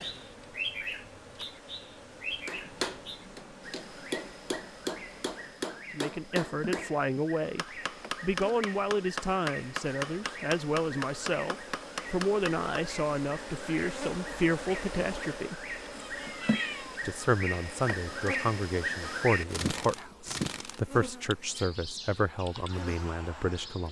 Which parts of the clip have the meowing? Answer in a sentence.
You can hear the meowing from 15.9 to 17.1 s.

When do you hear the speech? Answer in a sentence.
The speech can be heard from 5.9 to 15.6 s and from 17.1 to 23.8 s.